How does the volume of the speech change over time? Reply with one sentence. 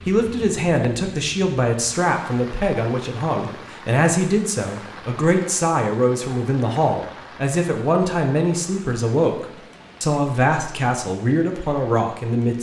The loudness of the speech stays about the same.